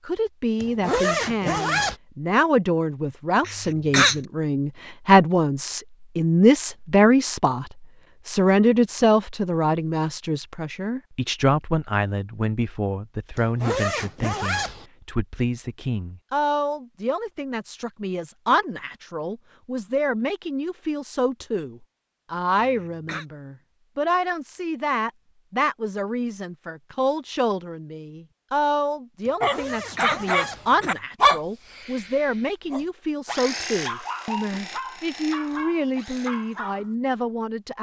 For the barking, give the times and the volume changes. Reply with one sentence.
You can hear the barking from 29.4 to 36.9 s, getting quieter.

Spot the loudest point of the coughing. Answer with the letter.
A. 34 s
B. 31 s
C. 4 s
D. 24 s
C.